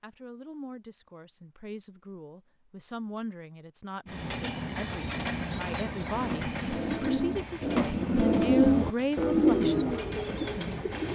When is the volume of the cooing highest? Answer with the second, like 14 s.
9 s.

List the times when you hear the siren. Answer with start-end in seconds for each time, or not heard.
not heard.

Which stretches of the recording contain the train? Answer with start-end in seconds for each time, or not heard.
4.0-11.1.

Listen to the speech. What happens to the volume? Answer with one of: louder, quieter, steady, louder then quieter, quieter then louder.
louder.